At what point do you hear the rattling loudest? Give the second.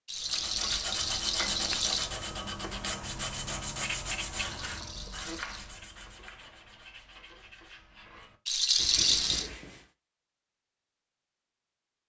9 s.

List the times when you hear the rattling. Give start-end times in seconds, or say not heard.
0.1-2.1, 4.4-5.7, 8.4-9.5.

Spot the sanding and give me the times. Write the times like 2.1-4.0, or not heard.
0.1-9.8.